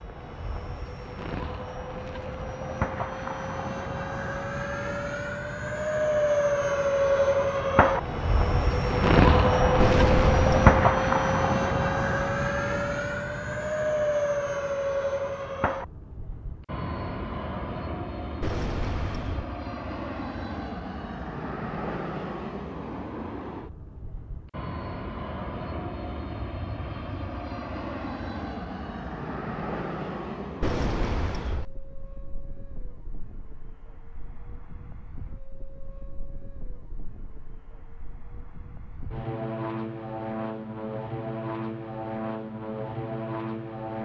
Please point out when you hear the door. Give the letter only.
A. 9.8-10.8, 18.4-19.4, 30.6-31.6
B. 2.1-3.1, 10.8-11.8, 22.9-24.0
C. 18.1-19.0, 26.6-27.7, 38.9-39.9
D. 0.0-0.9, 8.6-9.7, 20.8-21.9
A.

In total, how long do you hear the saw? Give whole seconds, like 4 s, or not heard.
not heard.